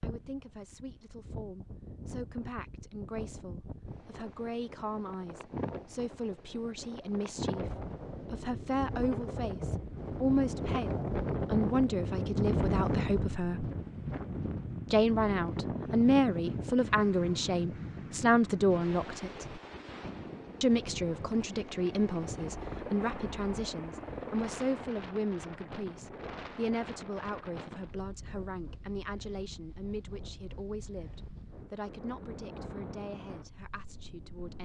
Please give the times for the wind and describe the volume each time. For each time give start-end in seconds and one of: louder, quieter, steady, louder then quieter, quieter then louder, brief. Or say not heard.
0.0-34.6 louder then quieter.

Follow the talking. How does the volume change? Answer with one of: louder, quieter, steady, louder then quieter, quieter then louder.
louder then quieter.